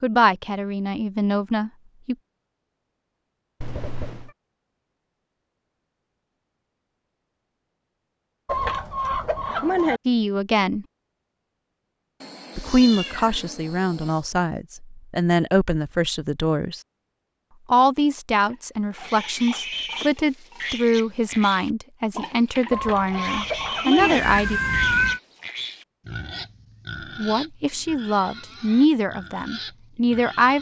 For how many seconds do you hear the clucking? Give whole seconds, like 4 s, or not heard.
3 s.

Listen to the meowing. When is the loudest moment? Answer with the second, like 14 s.
25 s.